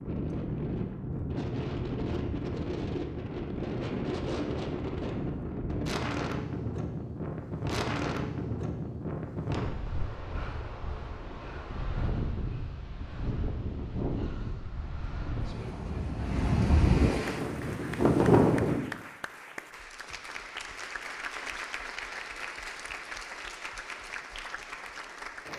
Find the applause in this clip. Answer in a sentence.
The applause can be heard from 17.2 to 25.5 s.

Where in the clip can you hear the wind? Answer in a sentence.
You can hear the wind from 0.0 to 18.9 s.